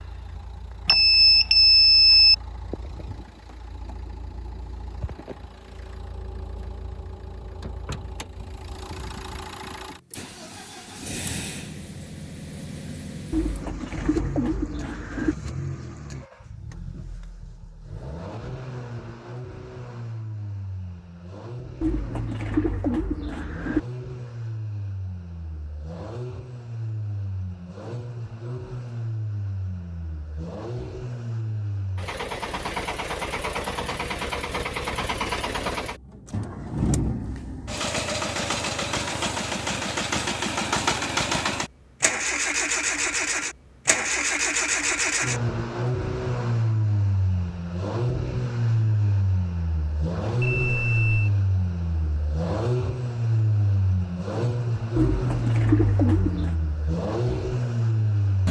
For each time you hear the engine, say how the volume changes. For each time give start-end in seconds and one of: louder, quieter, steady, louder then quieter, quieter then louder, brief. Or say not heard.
0.0-58.4 louder.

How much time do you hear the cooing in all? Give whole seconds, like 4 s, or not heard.
6 s.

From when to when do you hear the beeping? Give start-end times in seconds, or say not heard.
0.8-2.4, 50.4-51.4.